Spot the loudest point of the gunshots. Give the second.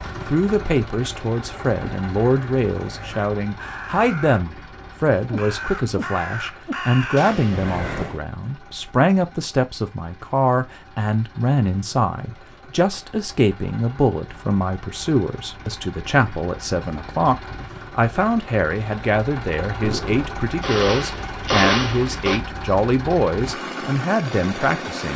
22 s.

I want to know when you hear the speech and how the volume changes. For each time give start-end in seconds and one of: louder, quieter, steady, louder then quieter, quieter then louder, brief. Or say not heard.
0.0-25.1 steady.